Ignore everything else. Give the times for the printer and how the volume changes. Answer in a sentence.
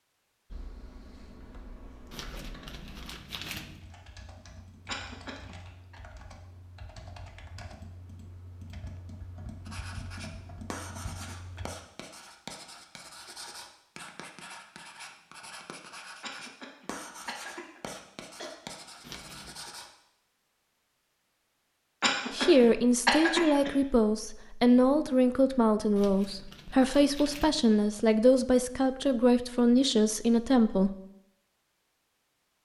You can't hear the printer here.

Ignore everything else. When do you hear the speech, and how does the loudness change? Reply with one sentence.
You can hear the speech from 22.3 to 30.9 s, at a steady volume.